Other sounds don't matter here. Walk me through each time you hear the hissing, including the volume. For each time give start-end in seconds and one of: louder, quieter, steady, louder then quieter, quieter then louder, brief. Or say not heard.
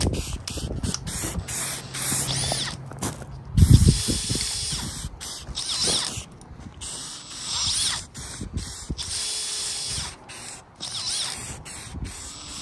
0.0-12.5 louder then quieter.